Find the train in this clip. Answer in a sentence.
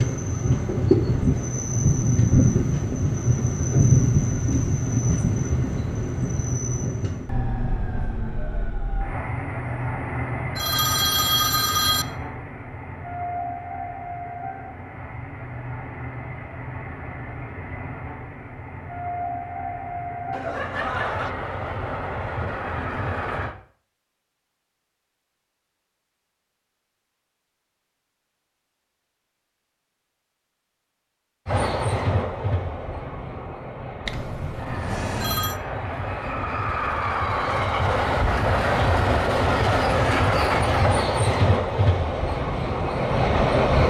The train can be heard from 0.0 to 23.6 s and from 31.4 to 43.8 s.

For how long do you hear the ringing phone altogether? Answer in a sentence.
The ringing phone can be heard for 4 seconds in total.